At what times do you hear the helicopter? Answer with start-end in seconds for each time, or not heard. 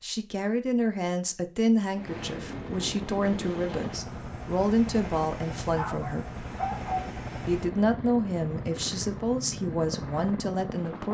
1.9-11.1.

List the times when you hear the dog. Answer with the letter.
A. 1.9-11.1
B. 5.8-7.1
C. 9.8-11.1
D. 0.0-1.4
B.